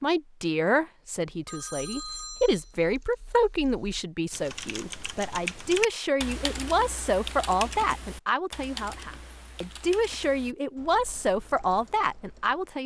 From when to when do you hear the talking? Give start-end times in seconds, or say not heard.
0.0-12.8.